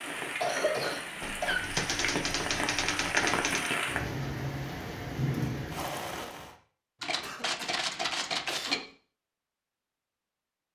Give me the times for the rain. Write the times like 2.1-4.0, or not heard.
0.0-6.5.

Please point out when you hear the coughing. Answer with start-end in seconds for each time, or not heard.
0.0-1.7, 7.2-8.9.